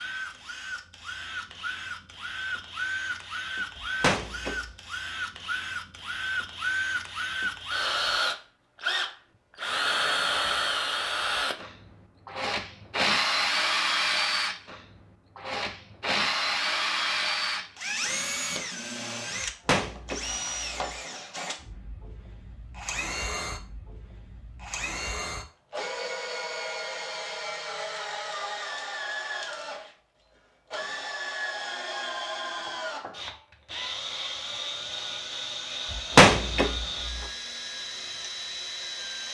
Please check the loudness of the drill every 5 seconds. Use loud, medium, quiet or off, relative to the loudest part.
medium, loud, loud, loud, medium, medium, medium, medium.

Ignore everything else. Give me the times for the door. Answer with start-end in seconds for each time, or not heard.
4.0-4.6, 19.6-20.9, 36.1-36.7.